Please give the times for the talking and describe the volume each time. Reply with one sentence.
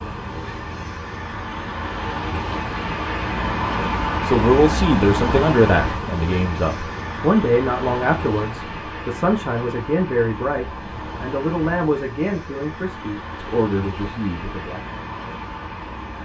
The talking can be heard from 4.2 to 14.8 s, getting quieter.